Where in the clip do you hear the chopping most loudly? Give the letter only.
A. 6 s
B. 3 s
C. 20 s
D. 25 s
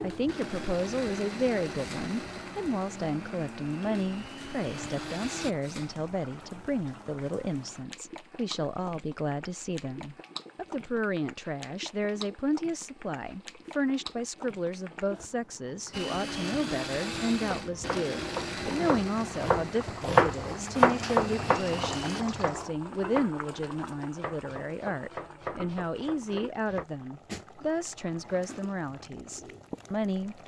C.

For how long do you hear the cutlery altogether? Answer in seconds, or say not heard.
not heard.